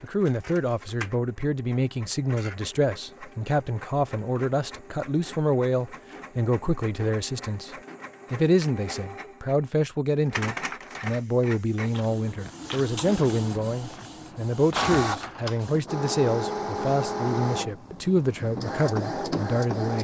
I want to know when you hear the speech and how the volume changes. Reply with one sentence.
The speech can be heard from 0.0 to 7.7 s, at a steady volume; and from 8.3 to 19.9 s, at a steady volume.